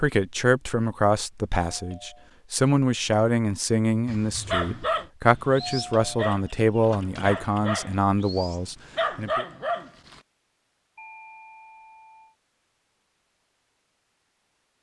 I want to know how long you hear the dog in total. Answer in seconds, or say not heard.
6 s.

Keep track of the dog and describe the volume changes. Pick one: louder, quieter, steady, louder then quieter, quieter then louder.
quieter then louder.